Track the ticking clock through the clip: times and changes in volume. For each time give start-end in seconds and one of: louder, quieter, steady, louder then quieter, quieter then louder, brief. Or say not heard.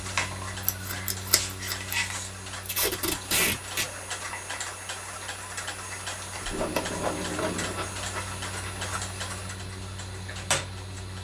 0.0-11.1 steady.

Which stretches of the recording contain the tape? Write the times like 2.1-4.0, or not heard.
2.6-3.9, 6.4-8.0.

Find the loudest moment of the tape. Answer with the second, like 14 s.
3 s.